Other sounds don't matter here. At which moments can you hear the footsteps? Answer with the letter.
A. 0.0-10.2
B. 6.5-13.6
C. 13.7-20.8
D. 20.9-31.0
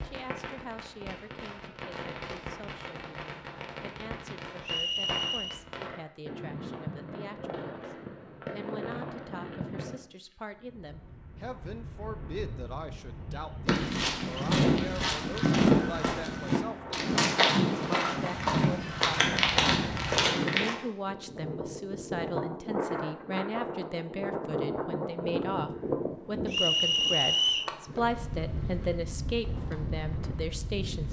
C.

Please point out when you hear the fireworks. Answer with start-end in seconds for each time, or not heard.
0.0-10.2.